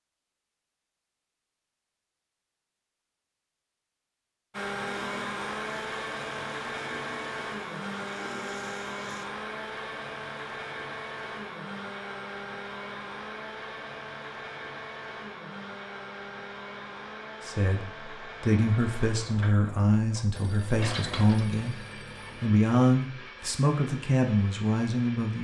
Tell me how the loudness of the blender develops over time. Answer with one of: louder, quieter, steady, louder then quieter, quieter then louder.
quieter.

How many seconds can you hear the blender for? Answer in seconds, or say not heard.
21 s.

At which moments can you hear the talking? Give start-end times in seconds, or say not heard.
17.4-25.3.